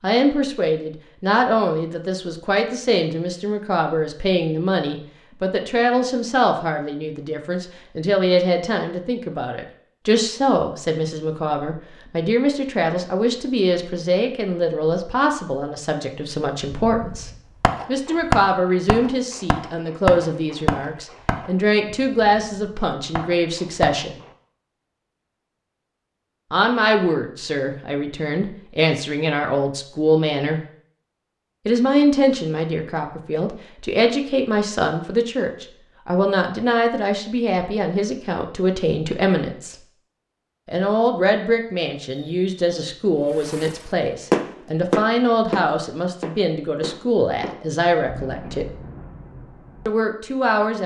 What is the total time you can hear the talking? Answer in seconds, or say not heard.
45 s.